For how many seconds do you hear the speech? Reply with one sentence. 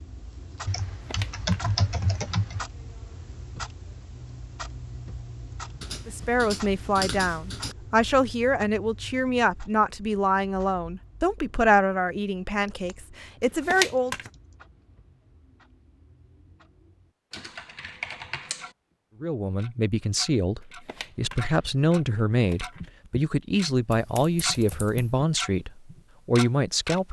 The speech can be heard for 16 seconds in total.